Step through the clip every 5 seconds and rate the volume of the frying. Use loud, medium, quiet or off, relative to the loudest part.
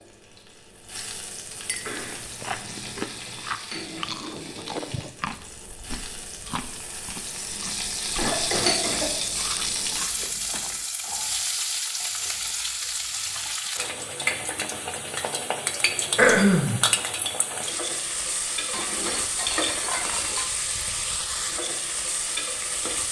medium, loud, loud, loud, loud.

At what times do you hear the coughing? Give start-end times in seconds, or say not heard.
1.8-2.2, 8.2-9.1, 16.1-16.8.